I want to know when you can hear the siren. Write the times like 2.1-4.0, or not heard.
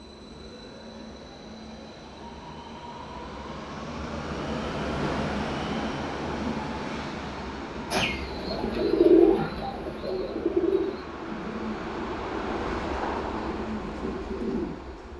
not heard.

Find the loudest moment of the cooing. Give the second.
9 s.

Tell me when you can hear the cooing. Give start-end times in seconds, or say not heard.
7.9-14.7.